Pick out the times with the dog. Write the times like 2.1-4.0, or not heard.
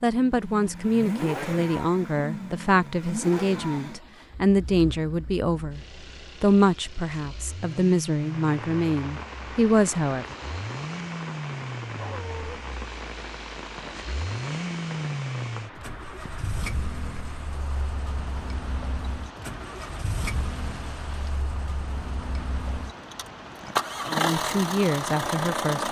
11.9-12.6.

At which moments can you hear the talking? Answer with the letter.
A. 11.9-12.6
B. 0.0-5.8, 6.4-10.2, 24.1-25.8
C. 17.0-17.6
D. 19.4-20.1
B.